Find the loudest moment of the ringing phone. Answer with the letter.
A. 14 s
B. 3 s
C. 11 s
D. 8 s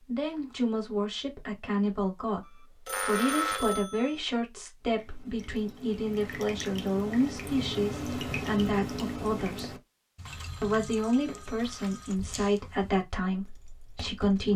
B.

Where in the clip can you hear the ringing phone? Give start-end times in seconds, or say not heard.
2.4-4.2, 10.2-12.2.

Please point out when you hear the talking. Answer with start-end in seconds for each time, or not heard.
0.1-9.8, 10.6-14.5.